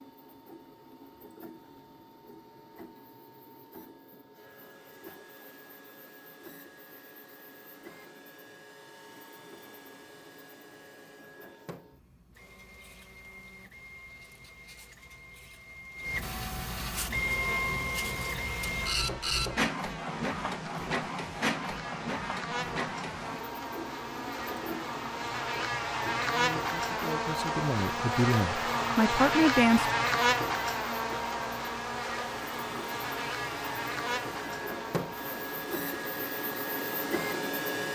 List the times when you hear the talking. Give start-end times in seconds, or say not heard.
26.2-29.9.